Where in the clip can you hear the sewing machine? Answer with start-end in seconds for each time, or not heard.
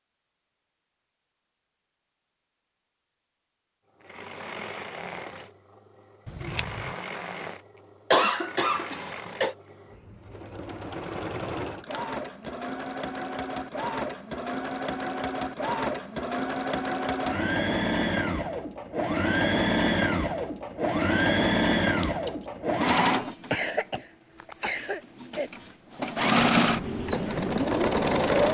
4.0-28.4.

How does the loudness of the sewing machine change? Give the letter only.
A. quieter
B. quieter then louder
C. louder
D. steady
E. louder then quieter
C.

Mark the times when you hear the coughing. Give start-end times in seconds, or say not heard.
8.1-9.6, 23.5-25.5.